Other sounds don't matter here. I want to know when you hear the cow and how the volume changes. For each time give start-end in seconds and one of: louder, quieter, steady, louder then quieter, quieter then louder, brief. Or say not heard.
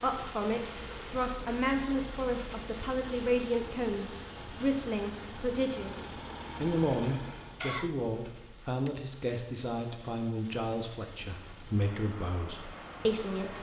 not heard.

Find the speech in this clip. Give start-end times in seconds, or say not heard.
0.0-13.5.